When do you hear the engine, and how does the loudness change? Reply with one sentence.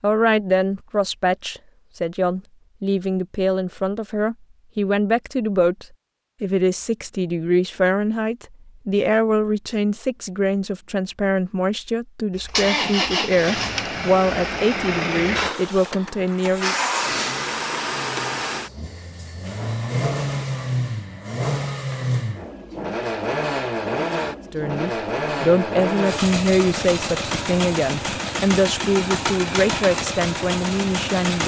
You can hear the engine from 12.3 to 31.4 s, at a steady volume.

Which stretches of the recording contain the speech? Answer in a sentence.
You can hear the speech from 0.0 to 16.8 s and from 24.5 to 31.4 s.